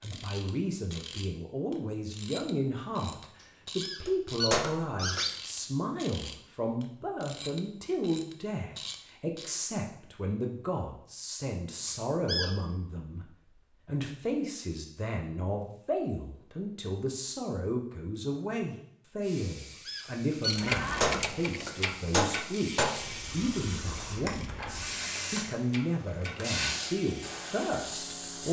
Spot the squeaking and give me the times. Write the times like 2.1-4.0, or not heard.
3.4-5.3, 11.8-12.5, 19.9-20.6.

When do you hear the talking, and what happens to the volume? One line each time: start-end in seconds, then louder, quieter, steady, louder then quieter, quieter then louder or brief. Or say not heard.
0.0-28.4 steady.